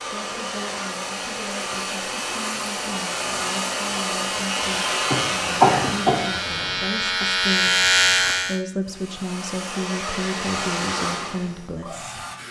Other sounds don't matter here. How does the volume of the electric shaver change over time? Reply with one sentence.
The loudness of the electric shaver goes up.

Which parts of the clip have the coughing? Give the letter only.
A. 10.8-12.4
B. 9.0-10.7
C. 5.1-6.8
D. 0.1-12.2
C.